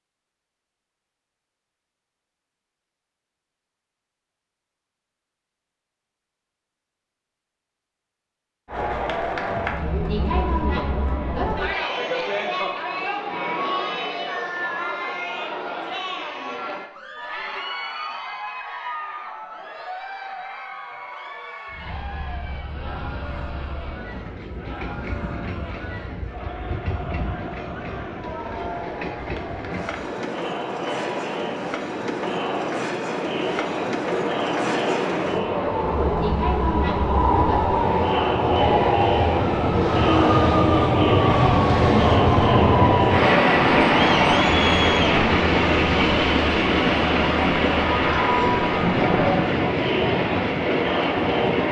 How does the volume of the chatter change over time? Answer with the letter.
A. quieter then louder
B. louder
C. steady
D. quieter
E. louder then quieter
A.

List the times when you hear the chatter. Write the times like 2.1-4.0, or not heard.
8.7-51.6.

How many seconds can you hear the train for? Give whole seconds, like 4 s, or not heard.
30 s.